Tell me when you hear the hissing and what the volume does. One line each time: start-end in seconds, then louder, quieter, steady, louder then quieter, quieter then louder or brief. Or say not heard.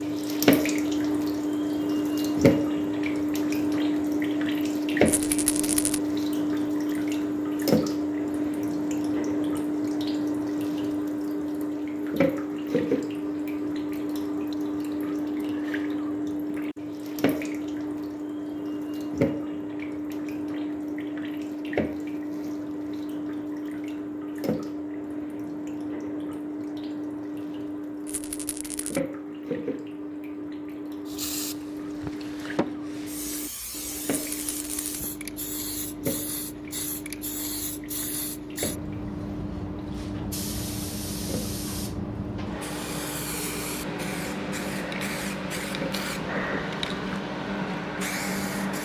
31.1-48.7 louder.